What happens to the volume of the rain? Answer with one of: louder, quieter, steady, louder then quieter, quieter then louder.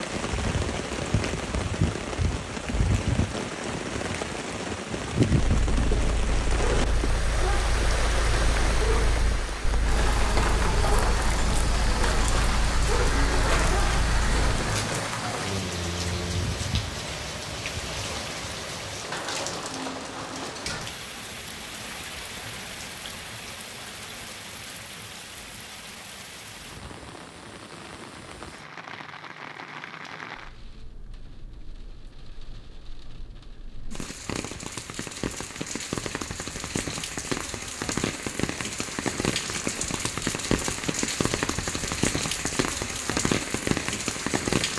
quieter then louder.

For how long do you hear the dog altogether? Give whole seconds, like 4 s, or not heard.
9 s.